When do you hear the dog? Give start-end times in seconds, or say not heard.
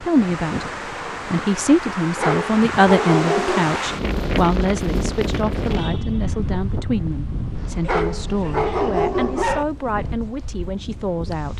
2.1-3.8, 7.8-9.7.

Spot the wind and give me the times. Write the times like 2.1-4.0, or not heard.
0.0-11.5.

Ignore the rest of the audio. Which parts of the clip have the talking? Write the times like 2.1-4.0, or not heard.
0.0-11.5.